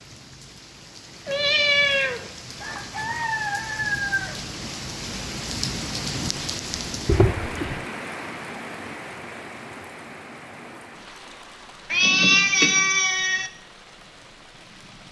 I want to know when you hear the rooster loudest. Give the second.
4 s.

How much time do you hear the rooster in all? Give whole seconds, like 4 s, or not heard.
2 s.